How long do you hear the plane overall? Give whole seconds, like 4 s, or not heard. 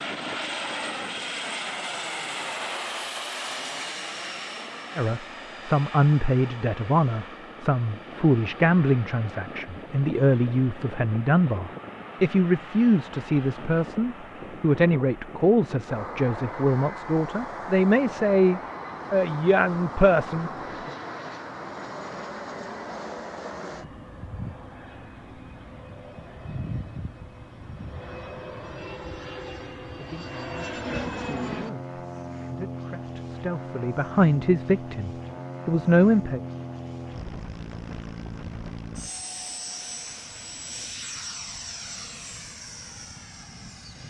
44 s.